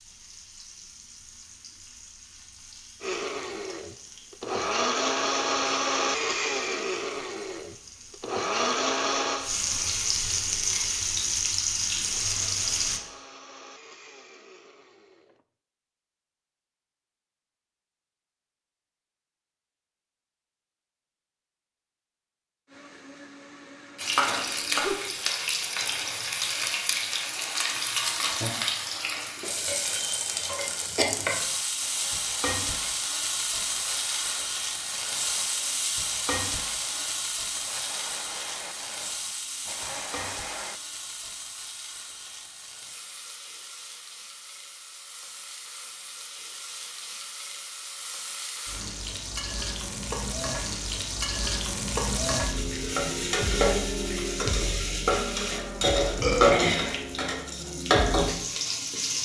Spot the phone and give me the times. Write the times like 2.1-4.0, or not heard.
not heard.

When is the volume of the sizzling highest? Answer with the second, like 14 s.
56 s.